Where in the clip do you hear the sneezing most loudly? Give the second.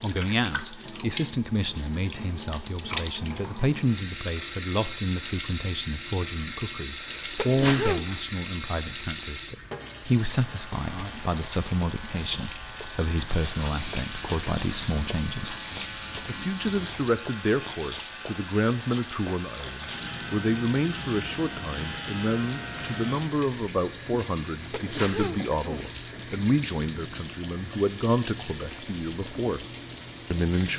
8 s.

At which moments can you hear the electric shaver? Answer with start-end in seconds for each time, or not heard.
10.2-23.4.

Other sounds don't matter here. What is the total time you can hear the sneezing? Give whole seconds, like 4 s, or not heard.
2 s.